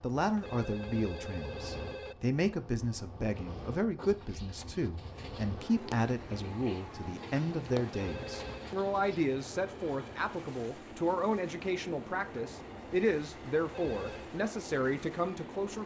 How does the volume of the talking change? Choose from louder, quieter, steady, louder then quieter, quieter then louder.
steady.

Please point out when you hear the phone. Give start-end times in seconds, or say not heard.
0.1-2.1, 7.8-8.8, 13.6-14.3.